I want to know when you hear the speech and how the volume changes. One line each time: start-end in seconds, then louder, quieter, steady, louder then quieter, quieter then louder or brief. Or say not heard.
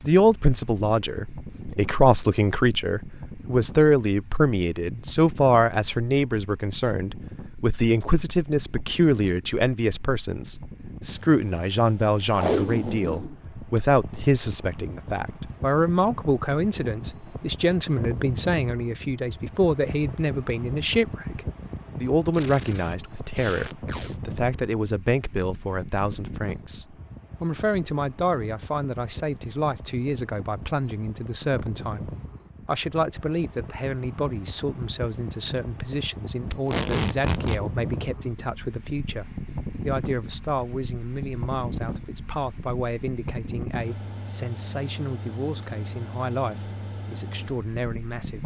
0.1-48.4 quieter.